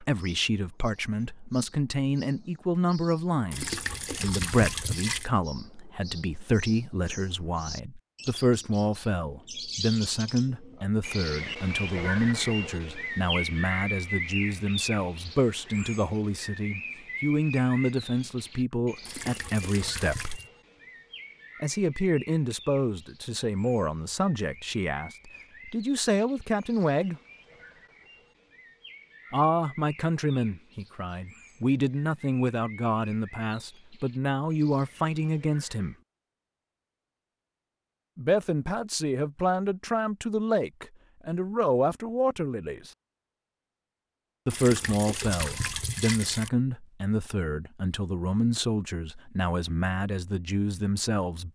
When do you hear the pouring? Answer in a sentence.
You can hear the pouring from 3.5 to 5.3 s, from 19.1 to 20.5 s and from 44.5 to 46.5 s.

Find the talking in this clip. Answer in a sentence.
The talking can be heard from 0.0 to 20.4 s, from 21.6 to 27.2 s, from 29.3 to 36.0 s, from 38.1 to 42.9 s and from 44.5 to 51.5 s.